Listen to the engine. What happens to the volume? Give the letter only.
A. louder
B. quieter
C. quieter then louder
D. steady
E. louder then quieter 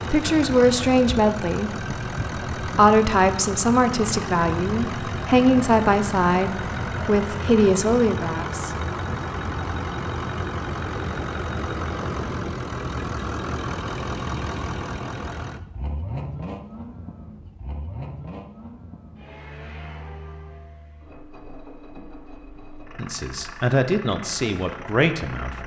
B.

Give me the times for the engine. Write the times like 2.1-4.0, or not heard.
0.0-25.6.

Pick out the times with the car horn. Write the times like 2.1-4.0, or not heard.
not heard.